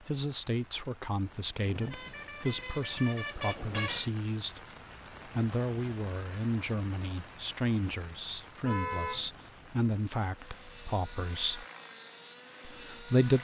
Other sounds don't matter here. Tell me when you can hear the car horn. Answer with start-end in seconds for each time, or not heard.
1.6-4.1, 8.6-9.3.